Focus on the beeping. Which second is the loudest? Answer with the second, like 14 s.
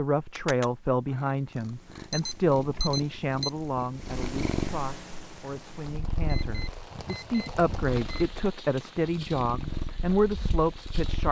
3 s.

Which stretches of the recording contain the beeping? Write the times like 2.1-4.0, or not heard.
2.1-3.5, 6.2-8.3.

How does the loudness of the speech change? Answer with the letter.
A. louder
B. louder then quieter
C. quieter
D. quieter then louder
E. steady
D.